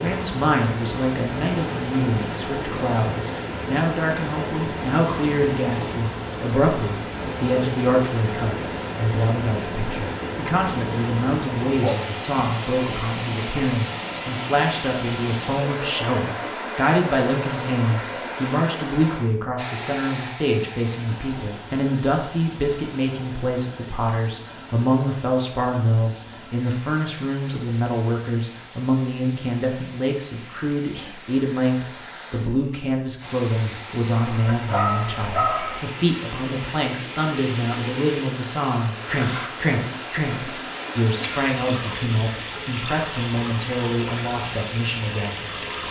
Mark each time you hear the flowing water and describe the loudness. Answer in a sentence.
You can hear the flowing water from 0.0 to 45.8 s, getting quieter then louder.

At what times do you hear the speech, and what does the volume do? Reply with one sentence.
The speech can be heard from 0.0 to 45.8 s, at a steady volume.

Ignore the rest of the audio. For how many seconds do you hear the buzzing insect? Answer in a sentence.
The buzzing insect can't be heard in this clip.